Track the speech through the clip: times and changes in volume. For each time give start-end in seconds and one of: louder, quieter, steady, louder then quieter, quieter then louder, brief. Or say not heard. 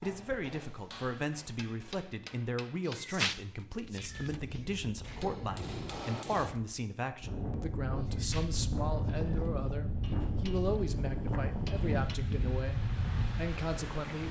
0.0-14.2 steady.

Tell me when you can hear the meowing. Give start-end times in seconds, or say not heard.
2.9-4.8, 8.0-9.8.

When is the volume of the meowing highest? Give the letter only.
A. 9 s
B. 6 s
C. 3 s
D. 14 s
C.